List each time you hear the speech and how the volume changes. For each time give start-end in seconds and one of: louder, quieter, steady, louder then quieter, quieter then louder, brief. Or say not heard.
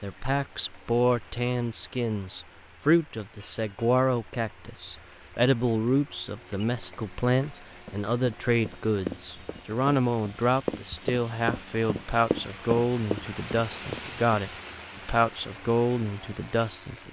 0.0-17.0 steady.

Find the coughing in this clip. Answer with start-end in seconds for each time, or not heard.
not heard.